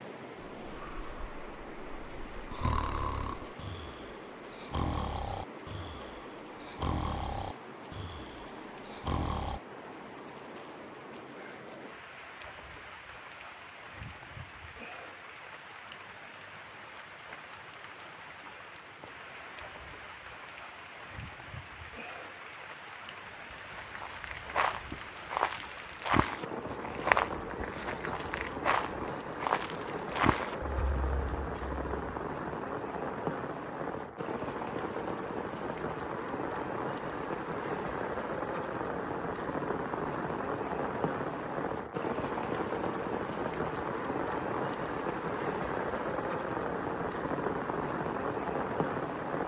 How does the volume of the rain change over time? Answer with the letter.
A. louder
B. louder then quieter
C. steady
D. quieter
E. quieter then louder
A.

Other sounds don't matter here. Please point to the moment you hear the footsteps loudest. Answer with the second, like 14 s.
27 s.